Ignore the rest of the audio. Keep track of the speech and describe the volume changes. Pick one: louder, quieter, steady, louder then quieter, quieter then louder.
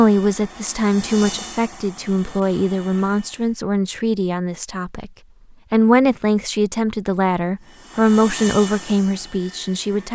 steady.